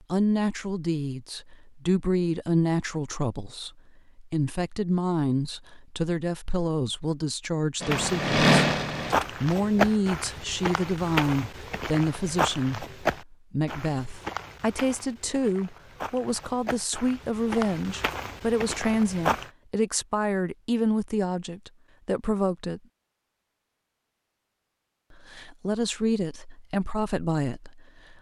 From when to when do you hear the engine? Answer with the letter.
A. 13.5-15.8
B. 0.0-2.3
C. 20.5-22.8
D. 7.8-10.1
D.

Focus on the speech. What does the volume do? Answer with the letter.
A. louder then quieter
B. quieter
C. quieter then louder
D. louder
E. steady
E.